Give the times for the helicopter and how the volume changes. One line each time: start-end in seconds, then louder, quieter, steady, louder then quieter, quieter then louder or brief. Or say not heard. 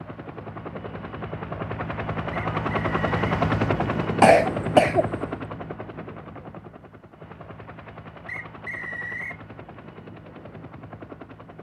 0.0-11.5 louder then quieter.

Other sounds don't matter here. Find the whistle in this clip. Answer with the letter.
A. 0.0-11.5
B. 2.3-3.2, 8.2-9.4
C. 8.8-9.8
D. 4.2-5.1
B.